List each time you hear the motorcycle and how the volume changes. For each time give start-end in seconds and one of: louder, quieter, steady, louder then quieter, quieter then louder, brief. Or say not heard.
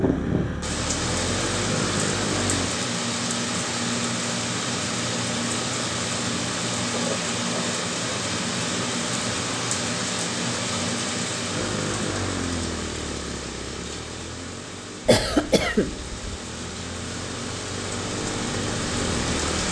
0.0-2.7 brief
11.4-19.6 quieter then louder.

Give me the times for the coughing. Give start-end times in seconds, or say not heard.
6.9-7.8, 15.1-16.1.